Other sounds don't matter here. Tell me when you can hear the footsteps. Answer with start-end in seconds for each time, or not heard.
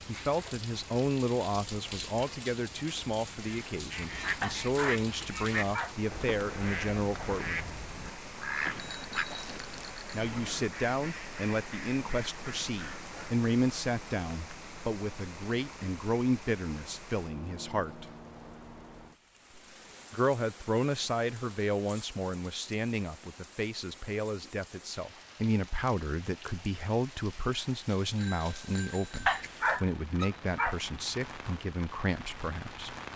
not heard.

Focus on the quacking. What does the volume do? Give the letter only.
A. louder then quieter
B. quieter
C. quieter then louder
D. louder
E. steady
B.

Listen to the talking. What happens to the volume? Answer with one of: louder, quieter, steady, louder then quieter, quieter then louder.
steady.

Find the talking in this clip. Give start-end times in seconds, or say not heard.
0.1-7.7, 10.1-18.1, 20.1-33.0.